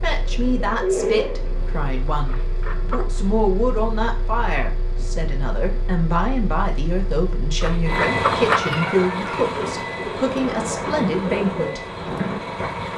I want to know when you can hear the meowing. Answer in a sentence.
You can hear the meowing from 2.2 to 3.2 s and from 7.6 to 9.5 s.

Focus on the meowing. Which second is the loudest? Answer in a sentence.
The volume of the meowing peaks at 8 seconds.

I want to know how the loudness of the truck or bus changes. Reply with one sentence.
The loudness of the truck or bus goes up, then down.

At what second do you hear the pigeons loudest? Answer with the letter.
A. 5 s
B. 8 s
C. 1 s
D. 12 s
C.